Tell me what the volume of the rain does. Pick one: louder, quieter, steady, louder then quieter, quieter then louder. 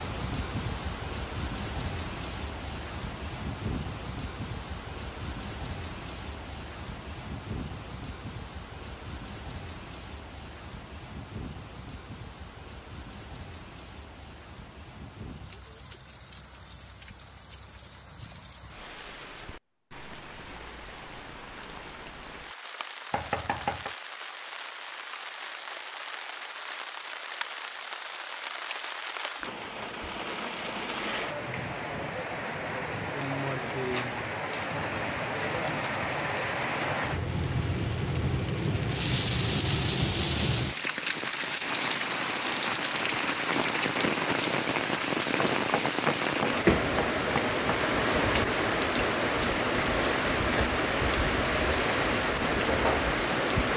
quieter then louder.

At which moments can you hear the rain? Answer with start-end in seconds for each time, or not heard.
0.0-53.7.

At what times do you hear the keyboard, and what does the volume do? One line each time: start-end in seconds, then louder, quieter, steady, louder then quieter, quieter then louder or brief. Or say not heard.
not heard.